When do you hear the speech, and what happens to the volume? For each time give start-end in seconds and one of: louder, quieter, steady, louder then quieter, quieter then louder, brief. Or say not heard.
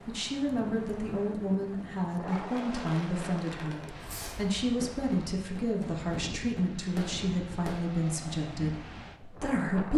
0.1-9.9 steady.